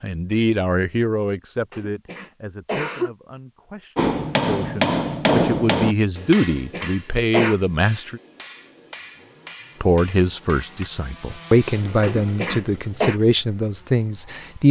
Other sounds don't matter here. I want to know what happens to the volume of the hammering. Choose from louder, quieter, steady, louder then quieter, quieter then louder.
quieter.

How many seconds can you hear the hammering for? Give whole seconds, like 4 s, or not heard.
7 s.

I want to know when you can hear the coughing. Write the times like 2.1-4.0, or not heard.
1.7-3.1, 6.3-7.5, 12.0-13.2.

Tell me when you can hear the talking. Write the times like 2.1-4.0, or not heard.
0.0-8.2, 9.8-14.6.